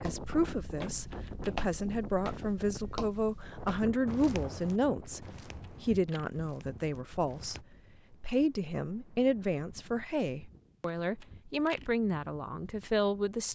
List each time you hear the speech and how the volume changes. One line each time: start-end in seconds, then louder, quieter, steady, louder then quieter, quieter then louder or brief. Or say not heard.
0.0-13.5 steady.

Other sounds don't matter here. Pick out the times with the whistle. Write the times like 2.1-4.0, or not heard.
not heard.